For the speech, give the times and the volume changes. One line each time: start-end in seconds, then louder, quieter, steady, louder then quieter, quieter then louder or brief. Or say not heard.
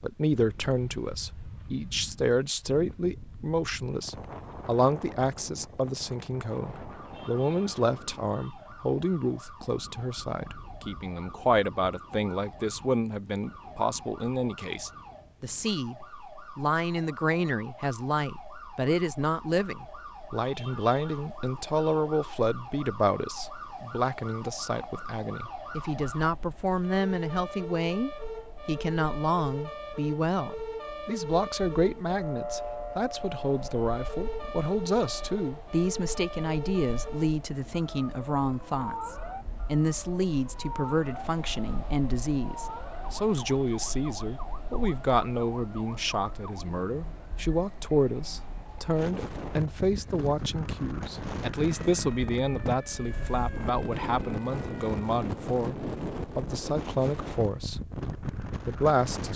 0.0-15.9 steady
16.6-59.3 steady.